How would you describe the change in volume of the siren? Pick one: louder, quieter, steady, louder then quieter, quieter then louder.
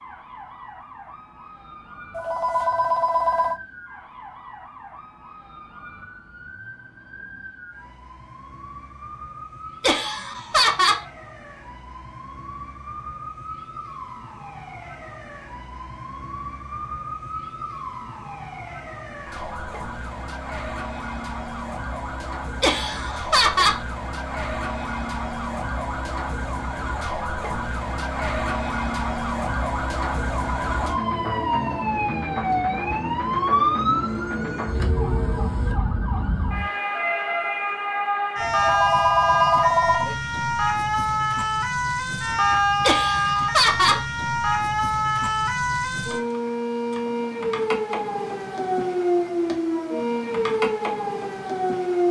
louder.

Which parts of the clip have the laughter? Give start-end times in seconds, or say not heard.
9.8-11.0, 22.6-23.8, 42.8-44.0.